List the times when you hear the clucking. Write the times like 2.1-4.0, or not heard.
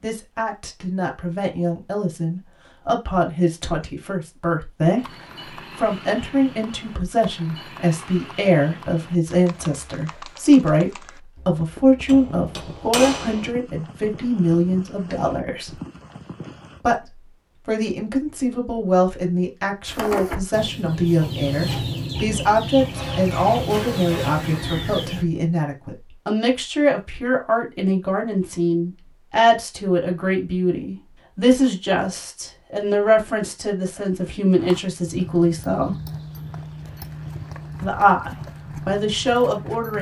19.9-25.2.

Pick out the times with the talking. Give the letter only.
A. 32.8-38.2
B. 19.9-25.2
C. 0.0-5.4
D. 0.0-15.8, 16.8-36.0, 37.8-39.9
D.